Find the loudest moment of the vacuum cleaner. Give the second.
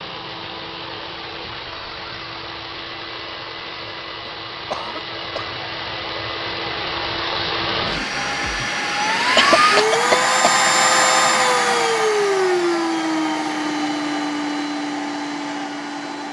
11 s.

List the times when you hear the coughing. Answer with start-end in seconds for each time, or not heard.
4.2-5.5, 8.6-10.6.